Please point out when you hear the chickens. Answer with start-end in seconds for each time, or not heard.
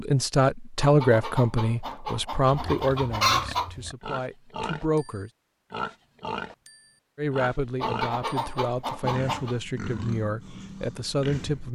0.8-3.7, 7.8-9.6.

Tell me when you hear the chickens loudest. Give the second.
3 s.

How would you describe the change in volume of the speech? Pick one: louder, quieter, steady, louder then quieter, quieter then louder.
quieter.